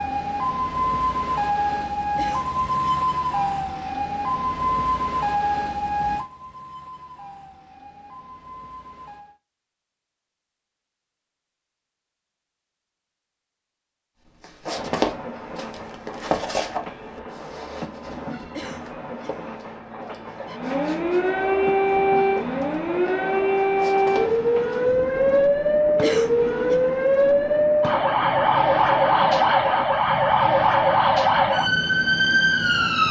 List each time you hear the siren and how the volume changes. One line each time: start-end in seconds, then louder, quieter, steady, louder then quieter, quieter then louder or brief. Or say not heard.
0.0-9.4 quieter
20.5-33.0 steady.